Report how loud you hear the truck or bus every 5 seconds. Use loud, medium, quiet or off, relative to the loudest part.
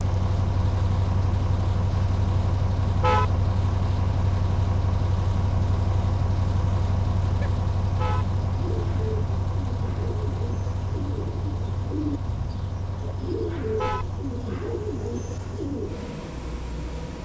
loud, loud, medium, medium.